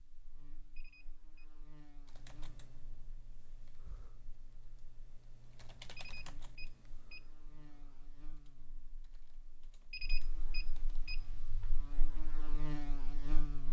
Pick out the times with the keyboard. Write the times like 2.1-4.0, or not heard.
2.0-11.3.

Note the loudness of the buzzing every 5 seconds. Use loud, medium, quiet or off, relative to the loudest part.
quiet, quiet, loud.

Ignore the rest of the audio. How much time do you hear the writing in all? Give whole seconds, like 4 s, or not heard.
not heard.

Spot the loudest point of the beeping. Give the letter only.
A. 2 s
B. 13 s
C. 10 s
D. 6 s
C.